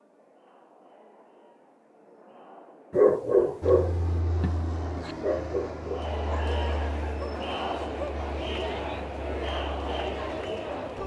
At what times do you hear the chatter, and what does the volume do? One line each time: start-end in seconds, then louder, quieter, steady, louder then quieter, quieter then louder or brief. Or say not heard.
0.0-11.0 louder.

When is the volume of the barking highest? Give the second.
3 s.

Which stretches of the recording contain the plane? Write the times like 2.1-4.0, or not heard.
3.6-11.0.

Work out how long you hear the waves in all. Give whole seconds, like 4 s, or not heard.
not heard.